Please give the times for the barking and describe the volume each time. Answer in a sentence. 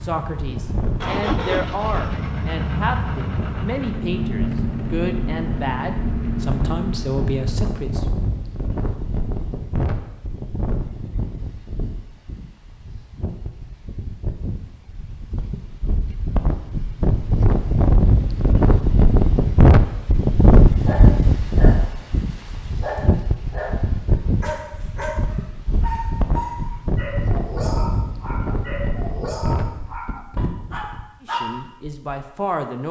You can hear the barking from 20.8 to 31.6 s, at a steady volume.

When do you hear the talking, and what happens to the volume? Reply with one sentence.
The talking can be heard from 0.0 to 8.1 s, at a steady volume; and briefly from 31.2 to 32.8 s.